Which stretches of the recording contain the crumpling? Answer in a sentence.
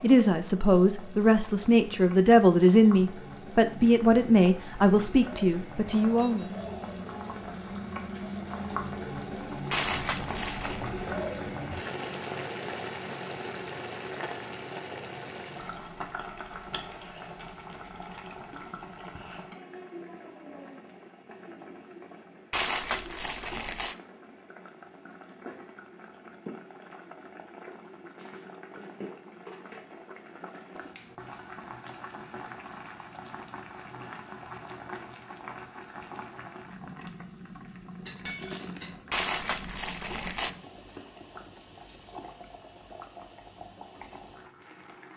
You can hear the crumpling from 9.7 to 10.8 s, from 22.5 to 23.9 s and from 39.1 to 40.5 s.